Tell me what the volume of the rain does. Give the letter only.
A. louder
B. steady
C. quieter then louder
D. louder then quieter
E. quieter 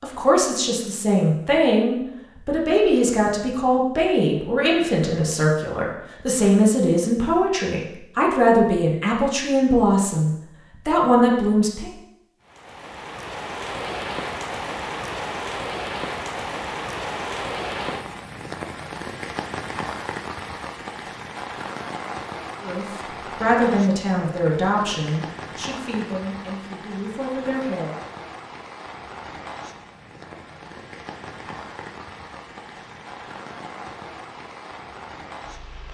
E.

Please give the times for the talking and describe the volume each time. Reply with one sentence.
You can hear the talking from 0.0 to 11.9 s, at a steady volume; and from 22.6 to 27.9 s, getting quieter.